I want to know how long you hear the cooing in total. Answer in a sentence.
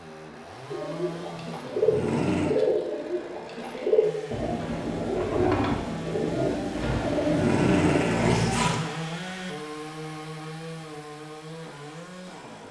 You can hear the cooing for 8 seconds altogether.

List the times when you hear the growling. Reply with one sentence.
The growling can be heard from 1.4 to 2.5 s and from 6.8 to 8.8 s.